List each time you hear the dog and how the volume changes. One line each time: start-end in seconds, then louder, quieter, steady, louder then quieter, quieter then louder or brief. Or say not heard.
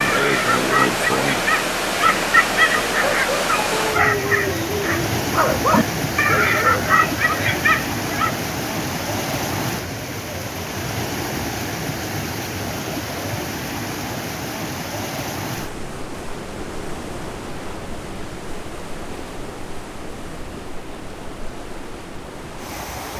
0.0-8.3 steady.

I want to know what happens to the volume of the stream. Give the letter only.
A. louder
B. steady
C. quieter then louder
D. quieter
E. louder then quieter
D.